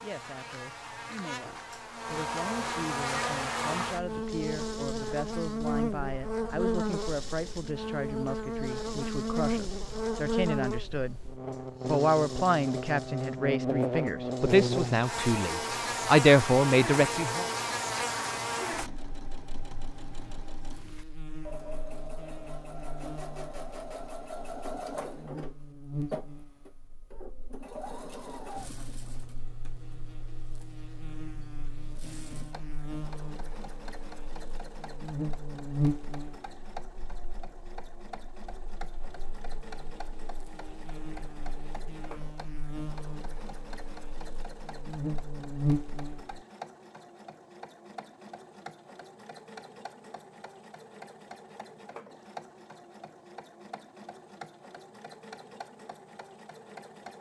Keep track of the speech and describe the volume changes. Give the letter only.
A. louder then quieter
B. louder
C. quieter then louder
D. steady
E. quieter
B.